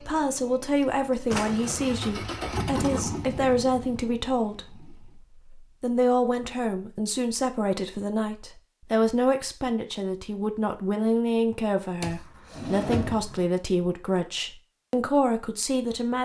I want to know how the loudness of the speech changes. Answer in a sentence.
The loudness of the speech stays about the same.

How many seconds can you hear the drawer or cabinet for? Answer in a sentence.
The drawer or cabinet can be heard for 2 seconds in total.